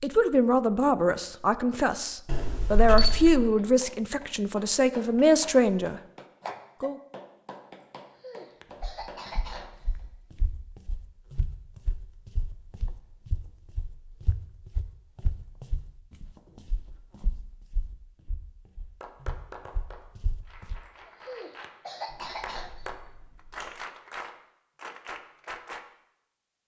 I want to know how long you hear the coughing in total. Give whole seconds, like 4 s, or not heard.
4 s.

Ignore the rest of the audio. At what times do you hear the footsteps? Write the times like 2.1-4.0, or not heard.
8.8-20.8.